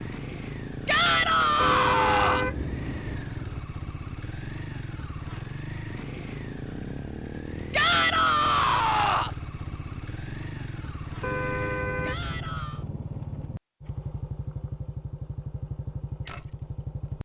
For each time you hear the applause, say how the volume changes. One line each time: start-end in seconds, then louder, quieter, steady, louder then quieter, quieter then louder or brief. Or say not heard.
not heard.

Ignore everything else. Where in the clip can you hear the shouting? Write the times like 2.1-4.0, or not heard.
0.8-2.5, 7.7-9.3, 12.0-12.8.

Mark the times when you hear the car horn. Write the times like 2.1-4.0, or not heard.
1.6-3.6, 11.2-12.6.